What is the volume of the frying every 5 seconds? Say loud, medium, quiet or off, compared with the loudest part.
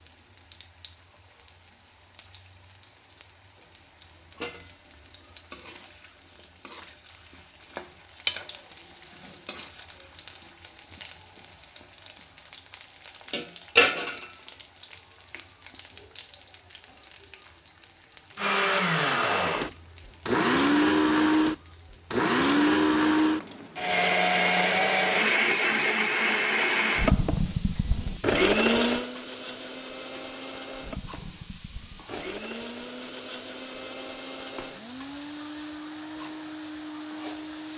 quiet, medium, loud, quiet, quiet, quiet, quiet, quiet.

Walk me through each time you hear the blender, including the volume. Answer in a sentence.
The blender can be heard from 18.4 to 37.7 s, getting quieter.